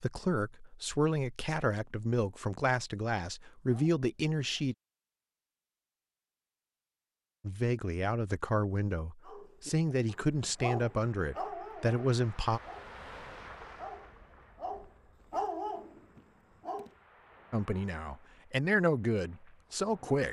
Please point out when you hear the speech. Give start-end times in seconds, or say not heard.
0.0-4.8, 7.4-12.6, 17.5-20.2.